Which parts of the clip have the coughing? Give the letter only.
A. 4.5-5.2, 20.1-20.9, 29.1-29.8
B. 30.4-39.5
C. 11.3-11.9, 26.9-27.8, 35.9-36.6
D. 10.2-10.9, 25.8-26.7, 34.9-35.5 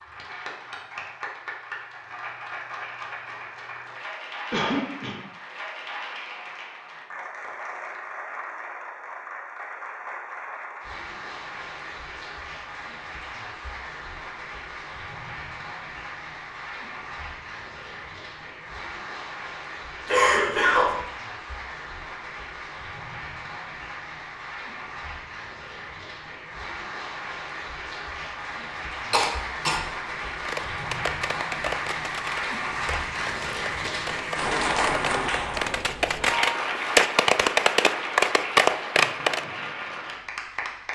A.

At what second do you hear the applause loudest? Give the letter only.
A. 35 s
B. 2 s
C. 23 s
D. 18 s
A.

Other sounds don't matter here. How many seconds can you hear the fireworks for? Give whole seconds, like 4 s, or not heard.
9 s.